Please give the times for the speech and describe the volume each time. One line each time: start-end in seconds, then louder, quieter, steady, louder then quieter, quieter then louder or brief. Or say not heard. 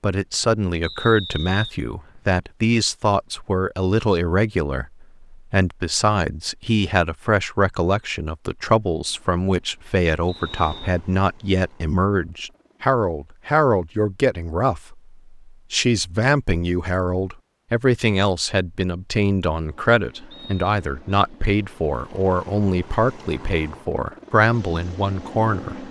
0.0-25.8 steady.